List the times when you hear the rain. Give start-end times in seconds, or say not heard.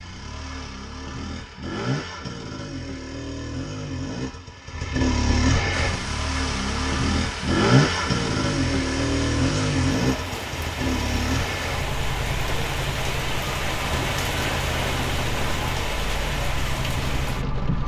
5.8-17.8.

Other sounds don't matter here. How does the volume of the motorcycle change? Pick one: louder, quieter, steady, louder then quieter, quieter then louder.
louder then quieter.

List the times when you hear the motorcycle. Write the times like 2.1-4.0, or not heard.
0.0-17.8.